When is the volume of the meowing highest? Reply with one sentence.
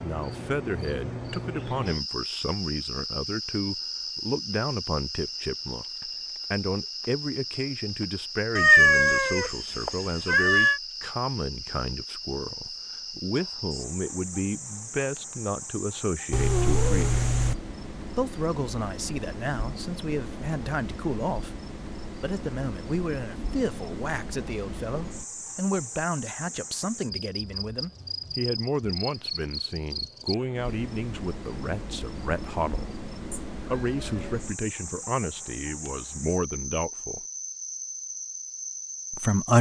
The loudest moment of the meowing is at 9 seconds.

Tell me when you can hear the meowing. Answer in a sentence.
The meowing can be heard from 8.6 to 10.8 s, from 16.3 to 17.6 s and from 33.3 to 34.4 s.